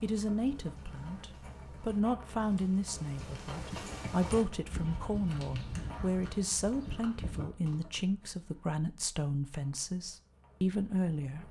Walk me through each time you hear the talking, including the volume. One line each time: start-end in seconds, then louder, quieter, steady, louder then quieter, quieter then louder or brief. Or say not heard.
0.0-11.4 steady.